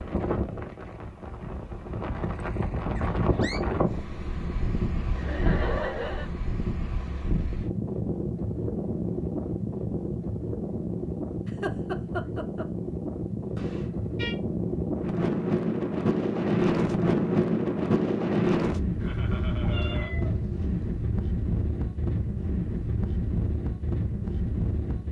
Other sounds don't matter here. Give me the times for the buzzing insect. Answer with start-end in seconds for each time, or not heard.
not heard.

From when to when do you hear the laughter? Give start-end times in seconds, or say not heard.
5.2-6.3, 11.4-12.7, 19.0-20.1.